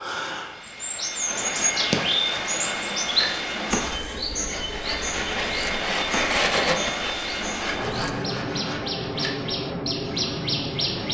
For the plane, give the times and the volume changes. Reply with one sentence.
You can hear the plane from 0.3 to 11.0 s, at a steady volume.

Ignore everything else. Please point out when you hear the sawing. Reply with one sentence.
The sawing can be heard from 1.2 to 9.3 s.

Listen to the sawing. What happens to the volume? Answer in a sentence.
The volume of the sawing goes up, then down.